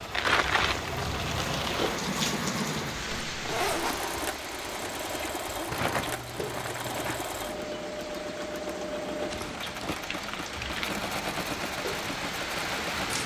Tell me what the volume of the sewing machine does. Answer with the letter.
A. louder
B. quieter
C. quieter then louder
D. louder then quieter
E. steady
E.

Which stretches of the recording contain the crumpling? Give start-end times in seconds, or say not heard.
0.1-2.0, 5.7-7.3, 10.2-10.9.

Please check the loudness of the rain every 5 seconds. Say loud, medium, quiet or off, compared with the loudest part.
loud, medium, loud.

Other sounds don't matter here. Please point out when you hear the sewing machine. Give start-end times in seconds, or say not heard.
0.0-13.2.